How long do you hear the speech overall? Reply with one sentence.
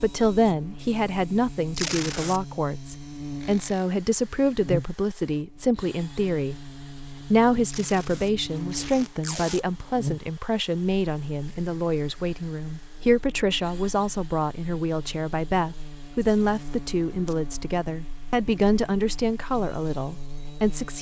You can hear the speech for 20 seconds altogether.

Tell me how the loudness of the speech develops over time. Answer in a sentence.
The volume of the speech stays about the same.